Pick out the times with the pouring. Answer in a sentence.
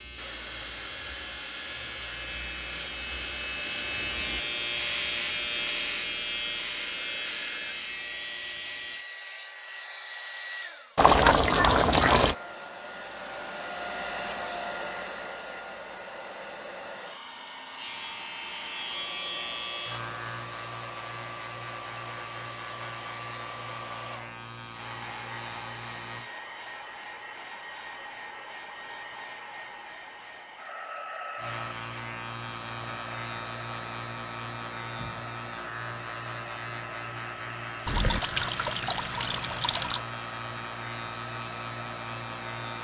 You can hear the pouring from 10.9 to 12.3 s and from 37.9 to 40.0 s.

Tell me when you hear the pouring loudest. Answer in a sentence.
The loudest moment of the pouring is at 11 seconds.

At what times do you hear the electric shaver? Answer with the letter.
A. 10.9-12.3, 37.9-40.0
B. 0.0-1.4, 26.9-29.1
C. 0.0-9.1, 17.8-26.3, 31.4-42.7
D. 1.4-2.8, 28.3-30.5
C.